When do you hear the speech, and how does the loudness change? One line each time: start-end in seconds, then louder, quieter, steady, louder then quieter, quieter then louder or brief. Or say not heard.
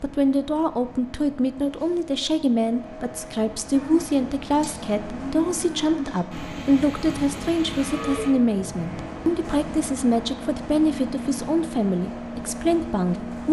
0.0-13.4 steady.